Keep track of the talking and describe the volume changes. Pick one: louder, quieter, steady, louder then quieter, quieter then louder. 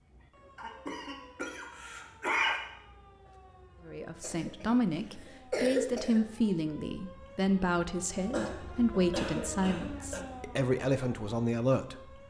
steady.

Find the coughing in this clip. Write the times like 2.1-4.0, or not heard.
0.6-2.6, 4.2-6.2, 8.3-10.2.